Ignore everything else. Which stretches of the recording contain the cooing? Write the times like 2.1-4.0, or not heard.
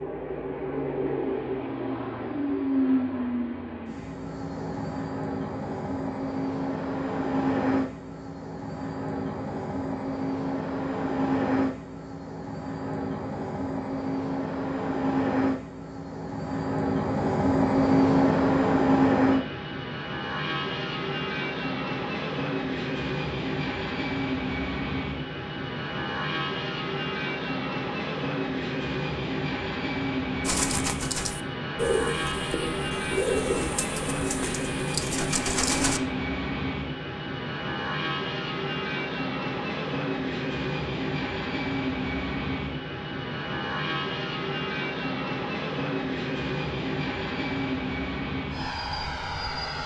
30.4-36.0.